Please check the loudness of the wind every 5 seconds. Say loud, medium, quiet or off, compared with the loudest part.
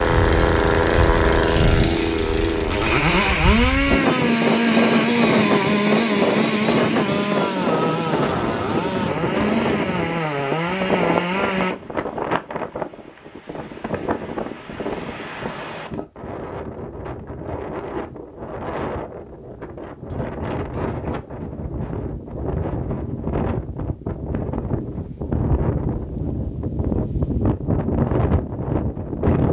loud, loud, medium, medium, medium, loud.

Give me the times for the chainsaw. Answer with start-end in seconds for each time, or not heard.
0.0-11.8.